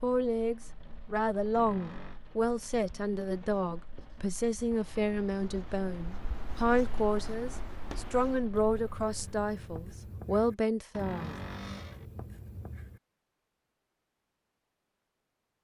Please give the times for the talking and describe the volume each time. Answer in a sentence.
The talking can be heard from 0.0 to 11.3 s, at a steady volume.